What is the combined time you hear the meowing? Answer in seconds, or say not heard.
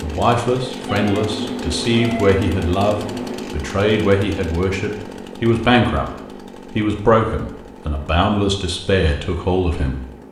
3 s.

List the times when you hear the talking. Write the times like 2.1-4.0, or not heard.
0.0-6.0, 6.7-10.0.